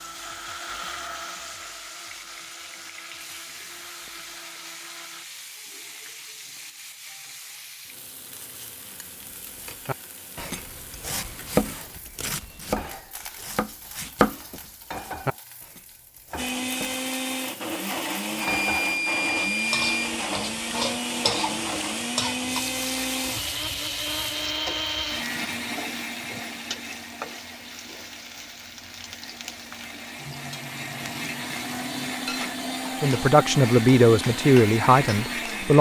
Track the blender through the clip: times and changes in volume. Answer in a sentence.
You can hear the blender from 0.0 to 5.2 s, getting quieter; and from 16.4 to 35.7 s, getting quieter then louder.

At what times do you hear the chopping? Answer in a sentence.
You can hear the chopping from 9.6 to 17.1 s.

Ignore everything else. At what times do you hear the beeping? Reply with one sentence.
The beeping can be heard from 18.4 to 20.1 s.